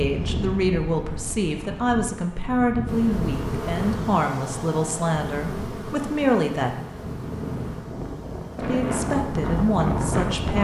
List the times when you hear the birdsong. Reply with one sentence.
You can't hear the birdsong here.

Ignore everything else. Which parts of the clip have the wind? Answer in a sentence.
The wind can be heard from 0.0 to 10.5 s.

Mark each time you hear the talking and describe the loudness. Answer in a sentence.
You can hear the talking from 0.0 to 6.8 s, at a steady volume; and briefly from 8.6 to 10.5 s.